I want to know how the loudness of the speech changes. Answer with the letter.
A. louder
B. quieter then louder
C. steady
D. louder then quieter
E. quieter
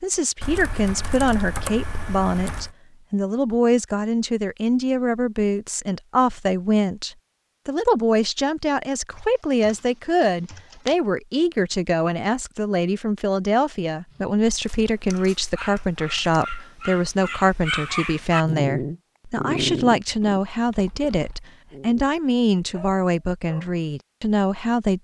C.